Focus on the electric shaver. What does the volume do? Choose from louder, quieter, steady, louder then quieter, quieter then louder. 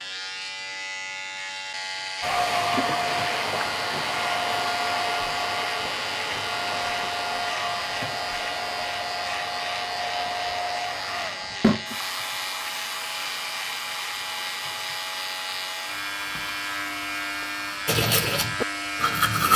steady.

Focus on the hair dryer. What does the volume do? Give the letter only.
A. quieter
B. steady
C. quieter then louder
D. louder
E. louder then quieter
A.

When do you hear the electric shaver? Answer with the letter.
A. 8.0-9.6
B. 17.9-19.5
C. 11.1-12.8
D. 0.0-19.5
D.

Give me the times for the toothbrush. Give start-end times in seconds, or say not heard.
17.9-19.5.